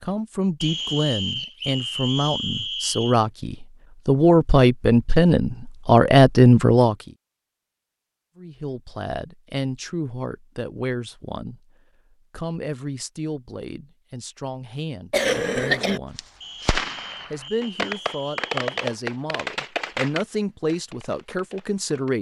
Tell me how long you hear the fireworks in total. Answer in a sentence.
You can hear the fireworks for 6 seconds altogether.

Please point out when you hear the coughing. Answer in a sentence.
The coughing can be heard from 15.1 to 16.0 s.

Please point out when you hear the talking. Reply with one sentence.
You can hear the talking from 0.0 to 7.0 s, from 8.3 to 16.2 s and from 17.3 to 22.1 s.